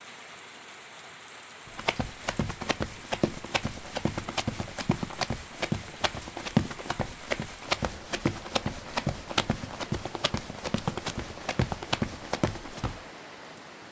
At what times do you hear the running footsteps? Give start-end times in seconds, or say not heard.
1.6-13.0.